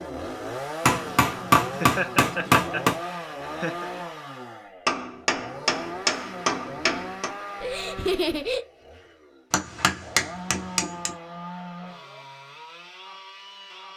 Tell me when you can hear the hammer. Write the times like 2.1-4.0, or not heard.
0.8-3.0, 4.8-7.3, 9.5-11.1.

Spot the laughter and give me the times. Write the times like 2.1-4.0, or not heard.
1.8-3.9, 7.6-8.7.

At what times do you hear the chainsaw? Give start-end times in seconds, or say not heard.
0.0-13.9.